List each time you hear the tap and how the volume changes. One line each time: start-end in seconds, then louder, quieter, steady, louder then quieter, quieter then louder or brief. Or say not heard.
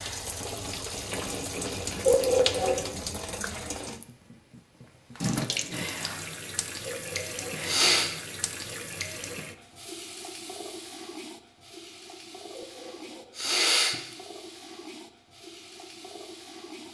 0.0-16.8 quieter.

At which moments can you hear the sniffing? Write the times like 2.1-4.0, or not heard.
2.0-2.8, 6.8-8.1, 12.6-13.9.